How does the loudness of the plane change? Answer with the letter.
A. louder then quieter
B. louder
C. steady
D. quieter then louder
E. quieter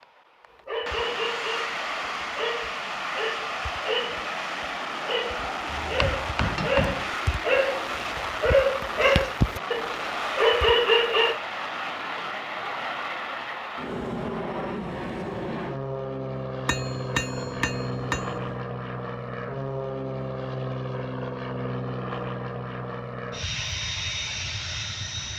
C.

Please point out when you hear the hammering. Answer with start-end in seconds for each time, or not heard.
5.7-7.1, 16.6-18.6.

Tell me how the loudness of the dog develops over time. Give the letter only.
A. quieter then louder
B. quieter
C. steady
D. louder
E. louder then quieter
D.